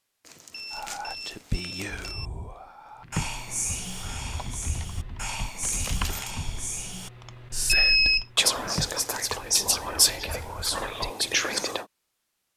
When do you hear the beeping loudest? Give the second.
8 s.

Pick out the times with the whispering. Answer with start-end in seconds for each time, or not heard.
0.7-11.8.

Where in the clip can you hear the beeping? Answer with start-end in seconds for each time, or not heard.
0.5-2.3, 7.7-8.2.